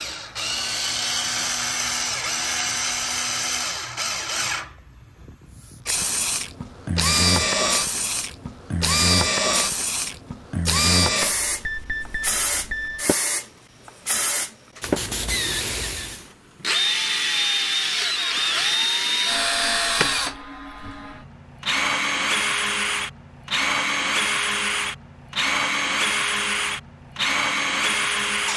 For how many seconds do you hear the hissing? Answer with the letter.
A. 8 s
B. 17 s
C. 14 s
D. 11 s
D.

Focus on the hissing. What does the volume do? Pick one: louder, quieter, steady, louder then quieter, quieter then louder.
steady.